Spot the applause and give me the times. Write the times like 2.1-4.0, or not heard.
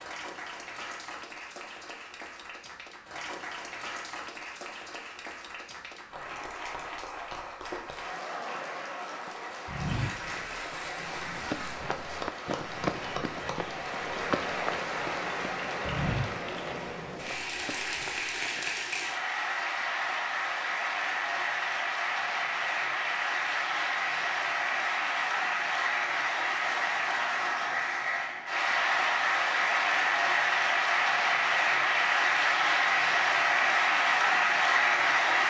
0.0-35.4.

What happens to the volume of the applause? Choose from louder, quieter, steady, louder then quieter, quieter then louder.
louder.